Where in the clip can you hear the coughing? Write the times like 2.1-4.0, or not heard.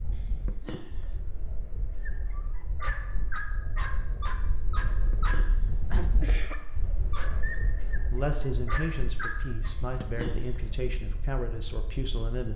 0.1-1.2, 4.9-6.7, 9.8-10.7.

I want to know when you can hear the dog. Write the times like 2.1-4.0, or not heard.
2.0-9.8.